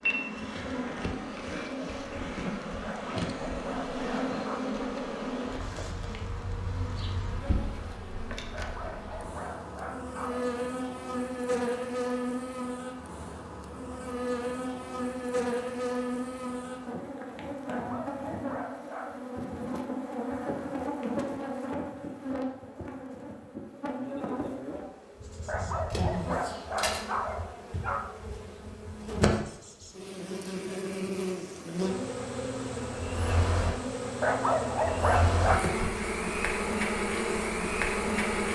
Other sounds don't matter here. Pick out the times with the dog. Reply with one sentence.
You can hear the dog from 2.8 to 4.6 s, from 8.5 to 10.6 s, from 17.6 to 19.1 s, from 25.4 to 28.1 s and from 34.2 to 35.7 s.